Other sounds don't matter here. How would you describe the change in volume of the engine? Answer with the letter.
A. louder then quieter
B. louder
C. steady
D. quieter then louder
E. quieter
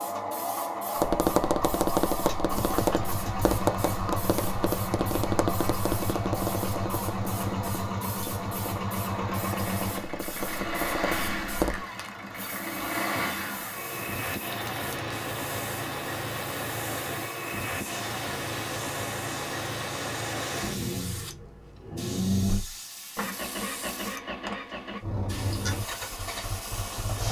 C.